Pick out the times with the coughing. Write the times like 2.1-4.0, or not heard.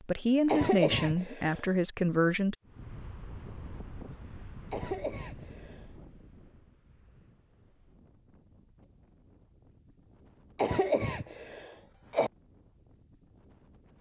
0.5-1.6, 4.7-5.8, 10.6-12.3.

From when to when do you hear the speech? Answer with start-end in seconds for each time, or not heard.
0.0-2.5.